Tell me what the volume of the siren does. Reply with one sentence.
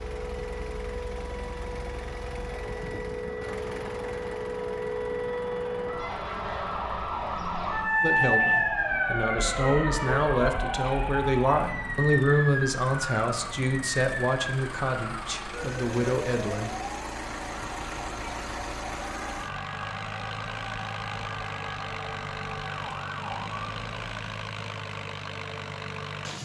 The loudness of the siren goes up, then down.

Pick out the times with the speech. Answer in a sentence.
The speech can be heard from 8.0 to 16.7 s.